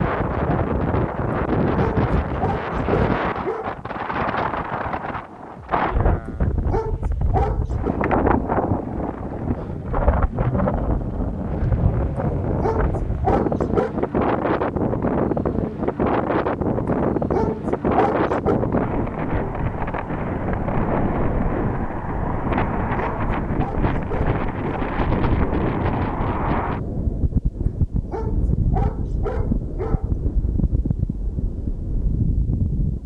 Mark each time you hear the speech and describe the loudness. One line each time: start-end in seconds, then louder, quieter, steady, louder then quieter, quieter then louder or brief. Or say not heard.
not heard.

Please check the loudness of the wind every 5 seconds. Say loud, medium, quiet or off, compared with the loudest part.
loud, loud, loud, loud, loud, loud, medium.